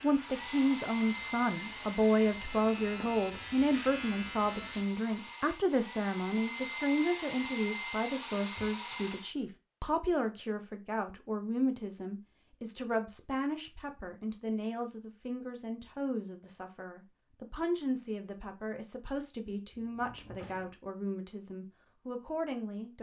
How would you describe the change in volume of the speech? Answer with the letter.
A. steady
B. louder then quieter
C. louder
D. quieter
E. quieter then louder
D.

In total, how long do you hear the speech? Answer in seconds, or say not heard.
23 s.